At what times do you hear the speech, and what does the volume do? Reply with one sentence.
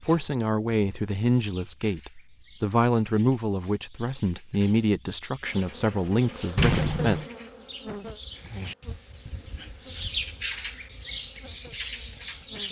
You can hear the speech from 0.1 to 7.2 s, at a steady volume.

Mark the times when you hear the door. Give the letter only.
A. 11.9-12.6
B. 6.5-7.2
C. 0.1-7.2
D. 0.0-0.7
B.